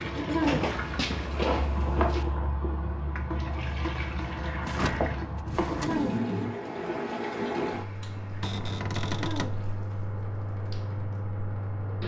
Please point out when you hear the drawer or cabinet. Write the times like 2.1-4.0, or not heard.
0.4-2.4, 4.6-6.2, 8.4-9.6.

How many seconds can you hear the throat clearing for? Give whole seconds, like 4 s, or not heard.
2 s.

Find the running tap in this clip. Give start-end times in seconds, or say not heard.
0.0-12.0.